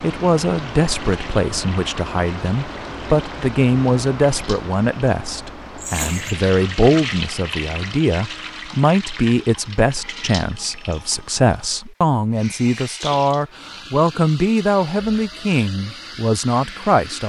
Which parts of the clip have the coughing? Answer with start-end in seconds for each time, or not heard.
5.8-6.3.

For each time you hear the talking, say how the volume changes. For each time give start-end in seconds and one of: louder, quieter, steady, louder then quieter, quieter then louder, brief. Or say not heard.
0.0-17.2 steady.